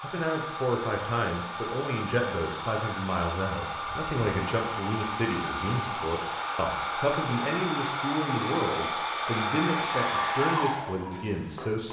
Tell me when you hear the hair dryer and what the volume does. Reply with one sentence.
You can hear the hair dryer from 0.0 to 11.8 s, getting louder.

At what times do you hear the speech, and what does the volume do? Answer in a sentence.
You can hear the speech from 0.0 to 11.8 s, at a steady volume.